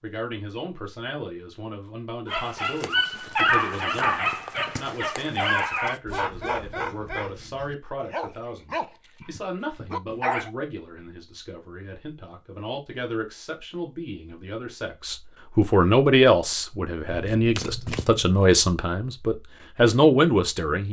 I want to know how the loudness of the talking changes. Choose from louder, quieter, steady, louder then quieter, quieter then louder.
louder.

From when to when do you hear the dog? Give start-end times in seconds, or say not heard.
2.2-10.5.